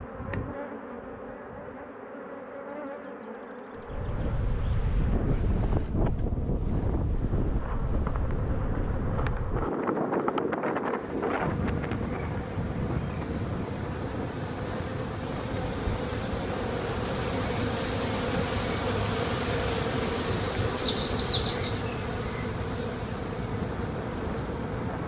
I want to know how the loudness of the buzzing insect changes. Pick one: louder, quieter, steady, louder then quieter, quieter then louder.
louder.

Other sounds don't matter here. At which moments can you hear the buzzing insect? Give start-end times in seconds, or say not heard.
0.0-25.0.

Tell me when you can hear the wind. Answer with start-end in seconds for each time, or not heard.
3.8-25.0.